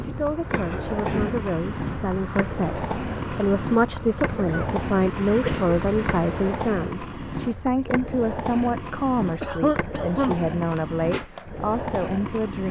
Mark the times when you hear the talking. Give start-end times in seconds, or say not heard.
0.0-12.6.